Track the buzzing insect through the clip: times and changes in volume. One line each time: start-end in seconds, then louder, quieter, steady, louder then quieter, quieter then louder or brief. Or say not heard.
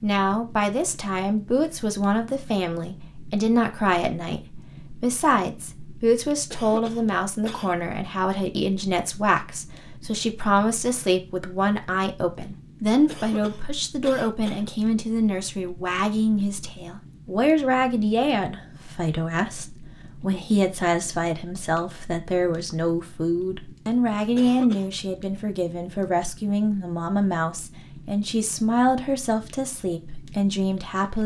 not heard.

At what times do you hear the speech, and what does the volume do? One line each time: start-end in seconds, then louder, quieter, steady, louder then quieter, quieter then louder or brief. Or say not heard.
0.0-31.2 steady.